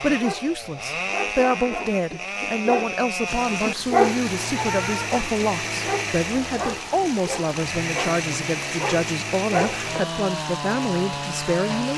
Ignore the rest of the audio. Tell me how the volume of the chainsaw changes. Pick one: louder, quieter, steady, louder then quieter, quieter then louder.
steady.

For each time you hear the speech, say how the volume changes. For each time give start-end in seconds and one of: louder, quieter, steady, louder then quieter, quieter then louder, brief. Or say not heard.
0.0-11.9 steady.